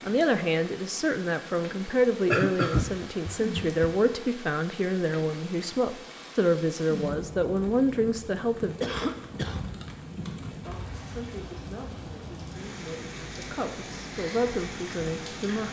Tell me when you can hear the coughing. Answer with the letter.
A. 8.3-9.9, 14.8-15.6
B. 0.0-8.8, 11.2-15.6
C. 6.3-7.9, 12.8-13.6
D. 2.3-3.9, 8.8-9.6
D.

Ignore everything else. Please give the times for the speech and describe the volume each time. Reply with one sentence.
You can hear the speech from 0.0 to 8.8 s, at a steady volume; and from 11.2 to 15.6 s, getting louder.